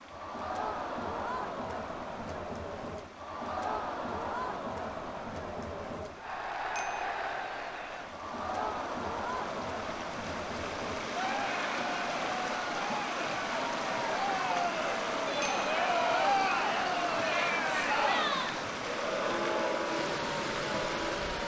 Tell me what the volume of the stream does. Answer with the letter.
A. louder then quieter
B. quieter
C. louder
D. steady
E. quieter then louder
C.